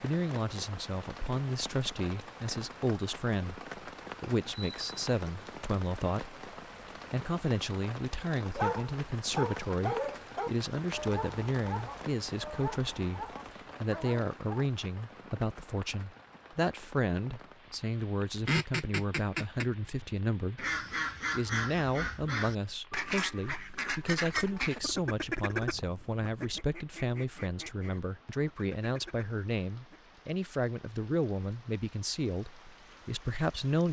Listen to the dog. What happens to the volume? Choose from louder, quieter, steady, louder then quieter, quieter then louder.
quieter.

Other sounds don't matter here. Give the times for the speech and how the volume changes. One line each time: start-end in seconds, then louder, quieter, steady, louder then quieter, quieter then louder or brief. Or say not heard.
0.0-6.3 steady
7.1-20.6 steady
21.3-33.8 steady.